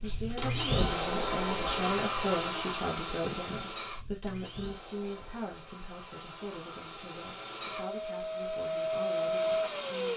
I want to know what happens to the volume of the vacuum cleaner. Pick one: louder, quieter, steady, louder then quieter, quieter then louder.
quieter then louder.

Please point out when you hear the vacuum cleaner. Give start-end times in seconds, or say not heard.
0.0-10.1.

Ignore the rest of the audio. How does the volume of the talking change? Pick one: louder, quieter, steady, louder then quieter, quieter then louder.
quieter.